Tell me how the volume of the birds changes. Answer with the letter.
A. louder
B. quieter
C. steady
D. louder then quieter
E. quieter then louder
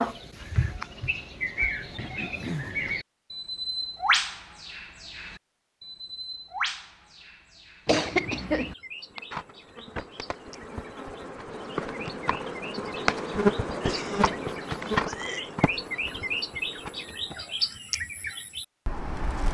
E.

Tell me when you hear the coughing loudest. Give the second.
8 s.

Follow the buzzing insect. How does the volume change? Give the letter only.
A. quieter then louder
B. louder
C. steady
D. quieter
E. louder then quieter
E.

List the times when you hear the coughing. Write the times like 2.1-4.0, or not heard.
1.9-2.8, 7.8-8.8, 13.8-15.5.